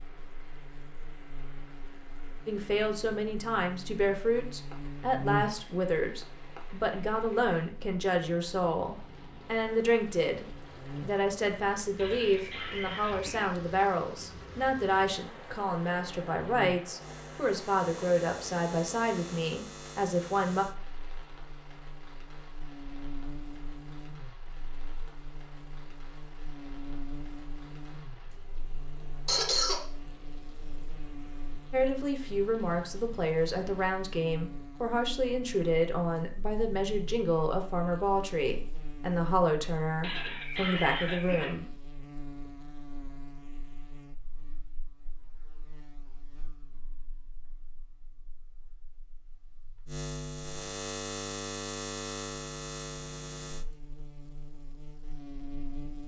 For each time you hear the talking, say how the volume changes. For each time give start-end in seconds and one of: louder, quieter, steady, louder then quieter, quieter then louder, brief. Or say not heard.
2.5-20.6 steady
31.7-41.6 steady.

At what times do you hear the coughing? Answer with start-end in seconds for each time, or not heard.
11.9-13.5, 29.2-29.8, 40.0-41.5.